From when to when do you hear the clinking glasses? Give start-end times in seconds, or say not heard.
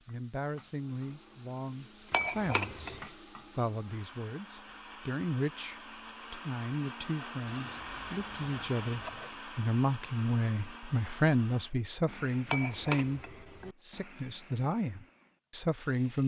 2.1-3.0, 12.4-13.8.